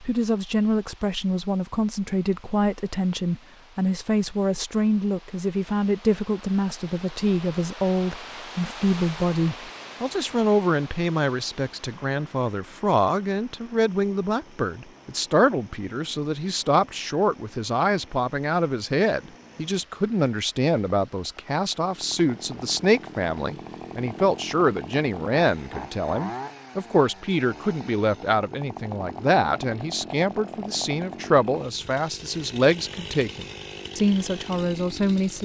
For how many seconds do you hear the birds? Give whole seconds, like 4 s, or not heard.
not heard.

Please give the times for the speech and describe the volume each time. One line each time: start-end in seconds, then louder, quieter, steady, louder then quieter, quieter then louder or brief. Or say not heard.
0.0-35.3 steady.